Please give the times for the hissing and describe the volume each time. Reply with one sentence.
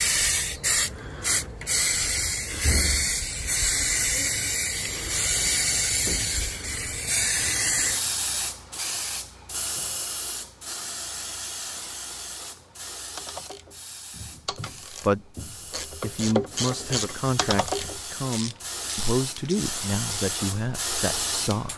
You can hear the hissing from 0.0 to 21.7 s, getting quieter then louder.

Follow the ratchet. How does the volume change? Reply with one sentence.
The loudness of the ratchet goes up, then down.